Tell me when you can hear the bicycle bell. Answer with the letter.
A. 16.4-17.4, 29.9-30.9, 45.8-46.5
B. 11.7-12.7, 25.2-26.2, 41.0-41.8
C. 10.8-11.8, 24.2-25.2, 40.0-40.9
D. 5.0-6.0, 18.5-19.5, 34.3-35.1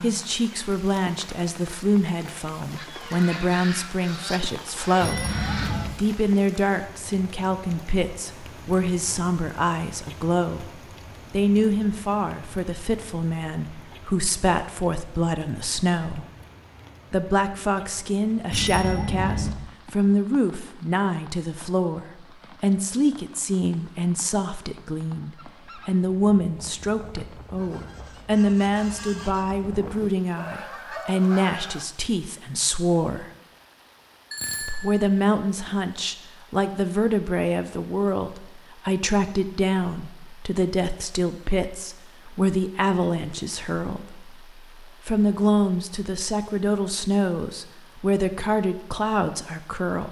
D.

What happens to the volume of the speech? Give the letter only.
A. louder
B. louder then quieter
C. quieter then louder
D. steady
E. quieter
D.